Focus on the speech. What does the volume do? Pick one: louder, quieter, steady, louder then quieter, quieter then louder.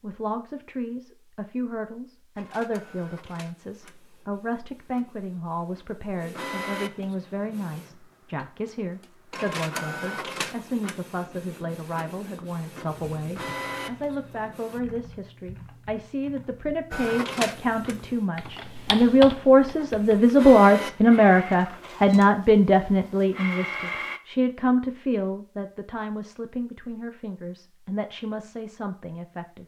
louder then quieter.